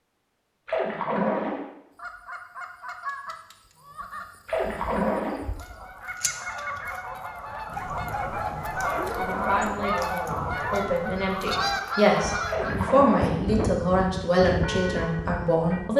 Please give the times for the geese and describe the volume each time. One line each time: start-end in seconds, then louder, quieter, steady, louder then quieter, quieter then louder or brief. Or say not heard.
1.9-12.9 louder.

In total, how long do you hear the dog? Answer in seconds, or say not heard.
2 s.